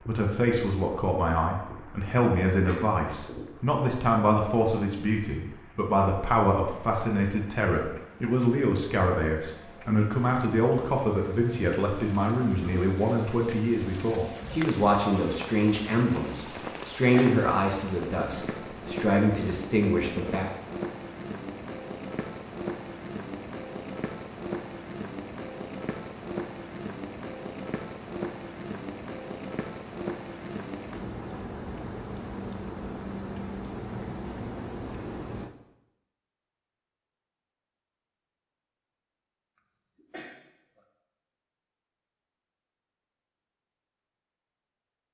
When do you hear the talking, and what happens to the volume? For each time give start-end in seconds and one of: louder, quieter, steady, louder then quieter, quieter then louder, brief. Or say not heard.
0.1-20.5 steady.